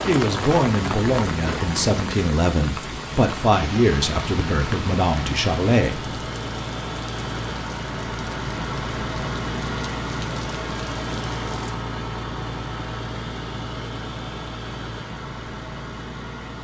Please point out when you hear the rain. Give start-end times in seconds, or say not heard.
0.0-11.8.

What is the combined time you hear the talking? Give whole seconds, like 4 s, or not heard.
6 s.